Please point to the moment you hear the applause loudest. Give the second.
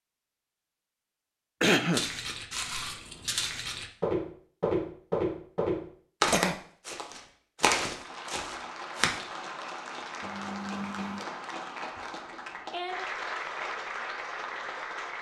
13 s.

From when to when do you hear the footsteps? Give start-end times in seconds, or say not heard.
1.9-9.2.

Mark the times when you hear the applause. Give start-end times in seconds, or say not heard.
7.9-15.1.